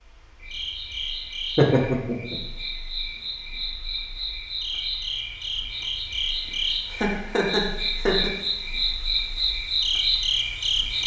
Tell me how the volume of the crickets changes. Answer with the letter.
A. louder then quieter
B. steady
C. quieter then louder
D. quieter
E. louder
E.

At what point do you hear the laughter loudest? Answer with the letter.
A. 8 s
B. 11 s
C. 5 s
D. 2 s
D.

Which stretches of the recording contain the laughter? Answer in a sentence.
The laughter can be heard from 1.6 to 2.4 s and from 6.9 to 8.3 s.